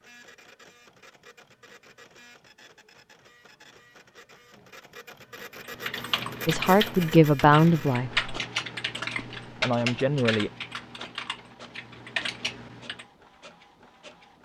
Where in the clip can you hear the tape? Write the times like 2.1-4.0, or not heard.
not heard.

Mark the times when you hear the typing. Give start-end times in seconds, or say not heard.
5.6-13.1.